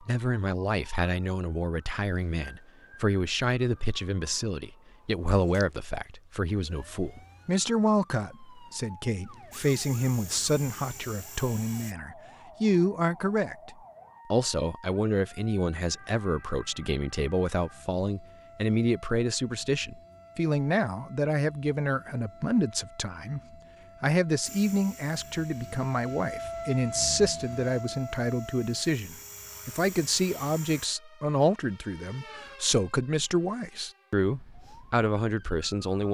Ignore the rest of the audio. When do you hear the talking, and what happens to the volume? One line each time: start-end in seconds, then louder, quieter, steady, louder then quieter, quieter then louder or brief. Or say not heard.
0.0-23.4 steady
24.0-36.0 steady.